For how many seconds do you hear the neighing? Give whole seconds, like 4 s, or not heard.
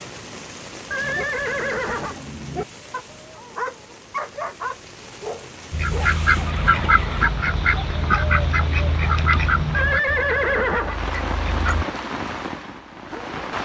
4 s.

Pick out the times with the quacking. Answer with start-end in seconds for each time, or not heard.
5.7-11.8.